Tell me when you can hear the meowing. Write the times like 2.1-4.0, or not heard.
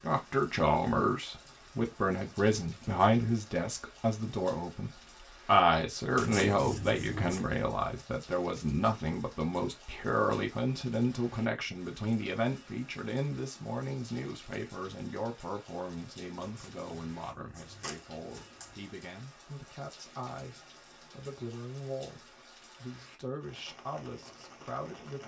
not heard.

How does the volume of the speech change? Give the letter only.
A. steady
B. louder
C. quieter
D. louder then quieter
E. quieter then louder
C.